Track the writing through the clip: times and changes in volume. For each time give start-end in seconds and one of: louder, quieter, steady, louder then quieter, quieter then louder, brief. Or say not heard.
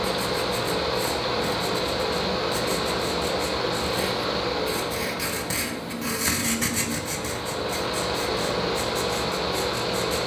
0.1-10.2 louder then quieter.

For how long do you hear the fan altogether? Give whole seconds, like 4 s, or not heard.
10 s.